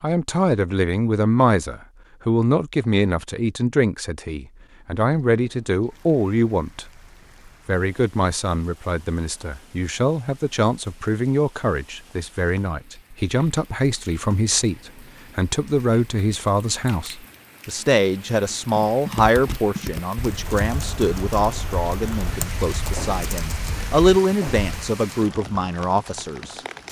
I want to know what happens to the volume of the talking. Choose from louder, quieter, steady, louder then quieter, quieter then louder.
steady.